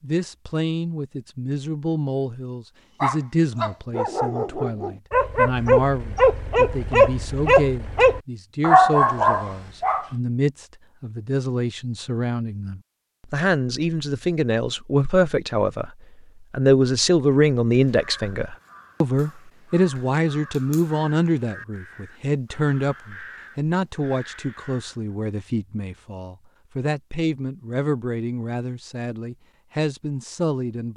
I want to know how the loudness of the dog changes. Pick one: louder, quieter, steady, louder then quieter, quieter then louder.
louder.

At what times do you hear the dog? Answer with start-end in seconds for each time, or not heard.
3.0-10.1.